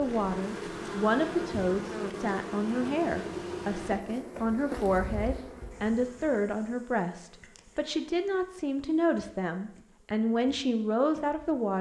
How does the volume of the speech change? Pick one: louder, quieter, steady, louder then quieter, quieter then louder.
steady.